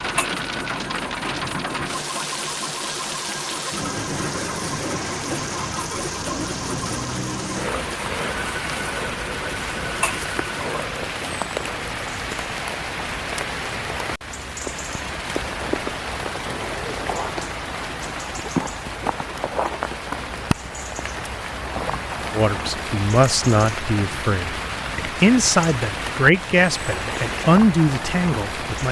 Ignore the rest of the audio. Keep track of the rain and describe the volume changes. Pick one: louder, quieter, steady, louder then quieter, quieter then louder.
steady.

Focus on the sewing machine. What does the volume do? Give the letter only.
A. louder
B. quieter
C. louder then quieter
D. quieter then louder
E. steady
E.